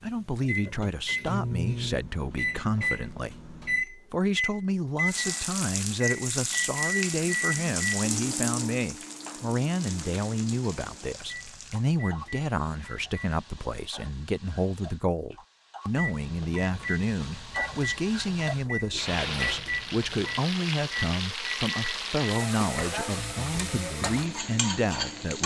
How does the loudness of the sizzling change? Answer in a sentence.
The volume of the sizzling goes down, then up.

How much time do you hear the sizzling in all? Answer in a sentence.
The sizzling can be heard for 20 seconds in total.